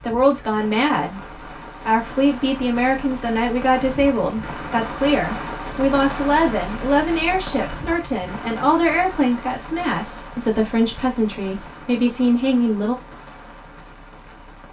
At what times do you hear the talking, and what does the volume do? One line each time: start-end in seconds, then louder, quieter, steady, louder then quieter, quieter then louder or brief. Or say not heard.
0.0-12.9 steady.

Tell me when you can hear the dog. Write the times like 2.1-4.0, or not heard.
not heard.